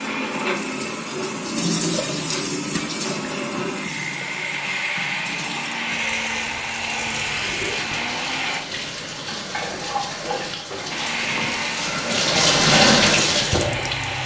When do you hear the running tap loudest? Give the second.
13 s.